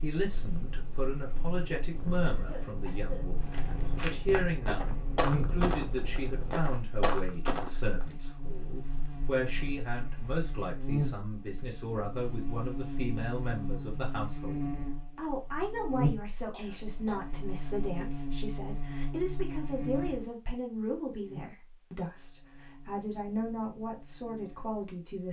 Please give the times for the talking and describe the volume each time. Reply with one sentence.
The talking can be heard from 0.0 to 25.2 s, at a steady volume.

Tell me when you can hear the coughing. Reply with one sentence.
The coughing can be heard from 2.2 to 3.2 s and from 16.5 to 17.8 s.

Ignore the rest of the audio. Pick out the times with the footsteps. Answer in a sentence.
The footsteps can be heard from 3.4 to 10.5 s.